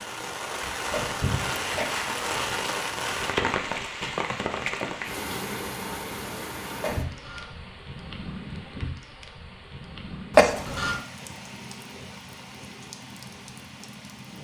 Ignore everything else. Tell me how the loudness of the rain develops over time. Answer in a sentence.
The loudness of the rain goes down.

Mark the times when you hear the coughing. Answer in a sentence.
The coughing can be heard from 0.9 to 2.2 s, from 6.8 to 7.5 s and from 10.3 to 11.0 s.